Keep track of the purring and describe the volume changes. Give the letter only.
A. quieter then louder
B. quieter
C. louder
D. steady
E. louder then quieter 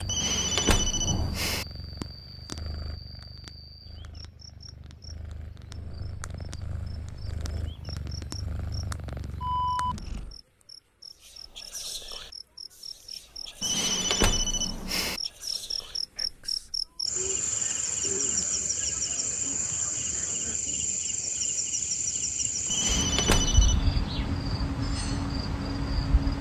A.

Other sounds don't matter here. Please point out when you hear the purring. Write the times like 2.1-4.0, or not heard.
0.0-10.4.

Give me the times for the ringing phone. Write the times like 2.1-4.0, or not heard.
0.1-1.6, 13.6-15.2, 22.7-23.9.